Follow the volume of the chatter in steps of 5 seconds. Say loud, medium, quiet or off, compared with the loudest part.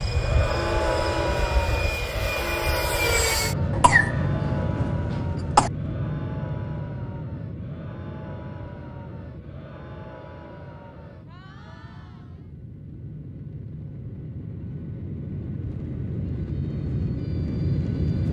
loud, quiet, quiet, off.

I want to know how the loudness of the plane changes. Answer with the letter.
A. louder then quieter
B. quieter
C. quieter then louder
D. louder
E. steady
C.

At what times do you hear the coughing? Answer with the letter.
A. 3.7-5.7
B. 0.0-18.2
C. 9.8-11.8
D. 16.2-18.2
A.